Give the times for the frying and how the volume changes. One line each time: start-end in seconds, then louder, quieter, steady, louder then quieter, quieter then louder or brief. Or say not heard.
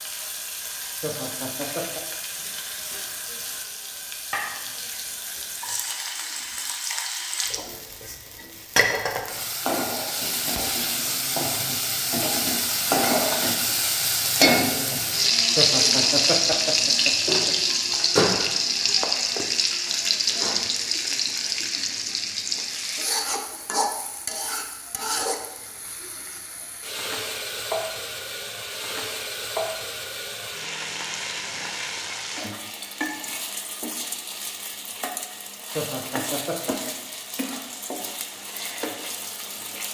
0.0-39.8 louder then quieter.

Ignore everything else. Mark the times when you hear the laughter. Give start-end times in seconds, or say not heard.
1.0-2.0, 15.6-17.6, 35.8-36.9.